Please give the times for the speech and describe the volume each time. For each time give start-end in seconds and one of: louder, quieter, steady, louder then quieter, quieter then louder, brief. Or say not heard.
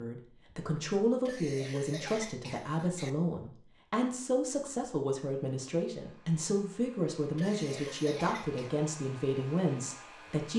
0.0-10.5 steady.